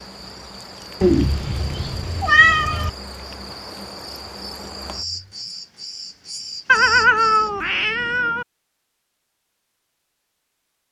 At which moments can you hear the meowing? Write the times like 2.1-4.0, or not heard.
1.0-2.9, 6.7-8.4.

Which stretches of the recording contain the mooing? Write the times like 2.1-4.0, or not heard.
not heard.